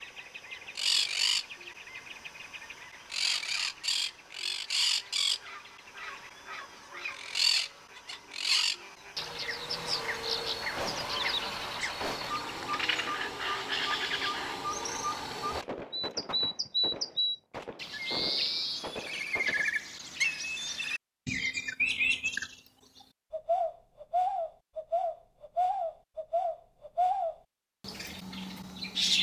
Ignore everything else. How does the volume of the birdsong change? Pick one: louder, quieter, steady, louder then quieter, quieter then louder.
steady.